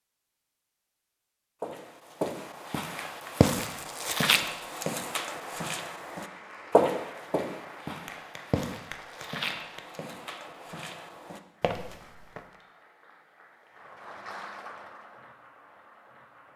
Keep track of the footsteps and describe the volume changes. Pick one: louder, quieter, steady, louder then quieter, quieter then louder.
quieter.